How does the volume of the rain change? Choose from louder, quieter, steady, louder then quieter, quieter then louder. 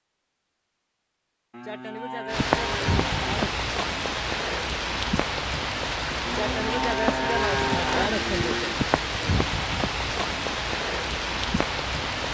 steady.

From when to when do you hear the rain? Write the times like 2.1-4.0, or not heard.
2.2-12.3.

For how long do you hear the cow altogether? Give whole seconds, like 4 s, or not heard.
5 s.